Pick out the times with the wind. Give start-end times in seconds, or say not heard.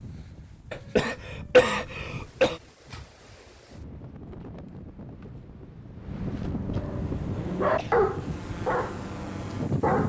0.0-10.0.